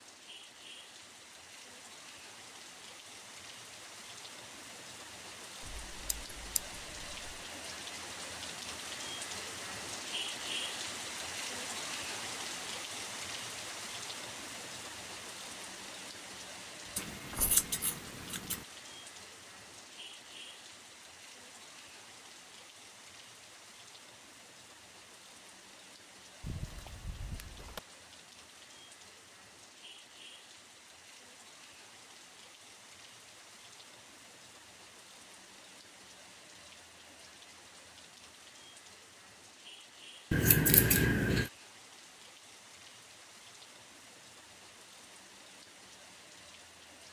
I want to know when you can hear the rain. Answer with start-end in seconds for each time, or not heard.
0.0-47.0.